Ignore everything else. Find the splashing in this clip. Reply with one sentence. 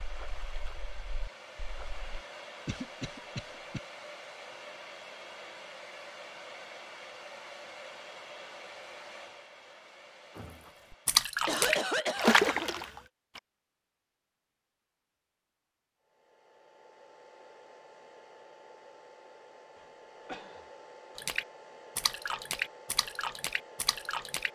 You can hear the splashing from 0.0 to 2.0 s, from 10.3 to 13.4 s and from 21.1 to 24.5 s.